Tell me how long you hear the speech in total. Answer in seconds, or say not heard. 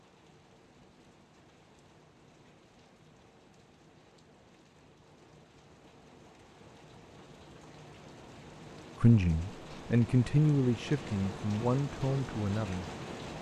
4 s.